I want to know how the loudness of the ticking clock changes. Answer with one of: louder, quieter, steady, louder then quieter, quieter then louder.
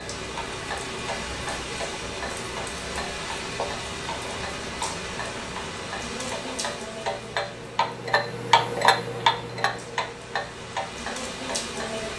louder then quieter.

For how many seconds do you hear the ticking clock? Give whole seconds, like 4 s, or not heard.
12 s.